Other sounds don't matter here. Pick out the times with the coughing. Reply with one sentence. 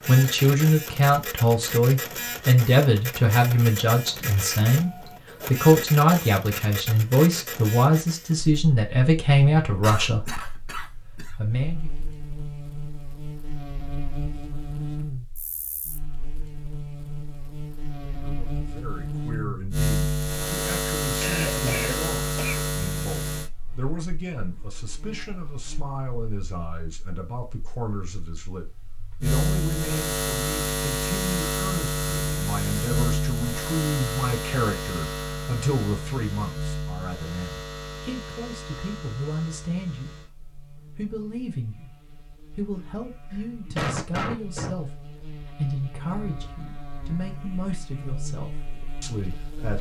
You can hear the coughing from 9.6 to 11.3 s, from 21.2 to 22.7 s and from 43.3 to 44.8 s.